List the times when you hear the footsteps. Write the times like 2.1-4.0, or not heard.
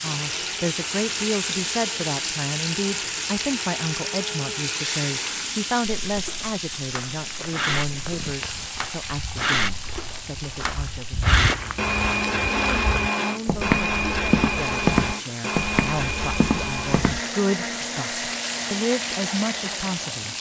6.0-17.2.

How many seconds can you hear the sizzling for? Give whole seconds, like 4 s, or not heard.
20 s.